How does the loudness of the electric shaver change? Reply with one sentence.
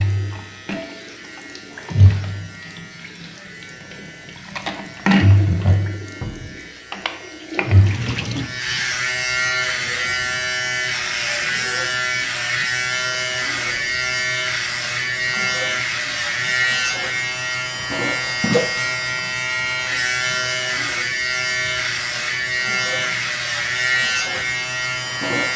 The volume of the electric shaver goes up.